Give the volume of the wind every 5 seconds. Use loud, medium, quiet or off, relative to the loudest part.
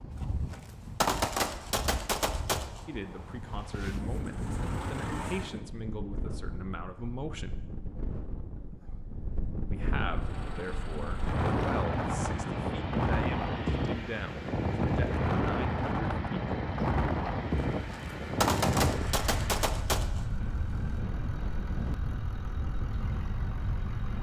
medium, medium, loud, loud, medium.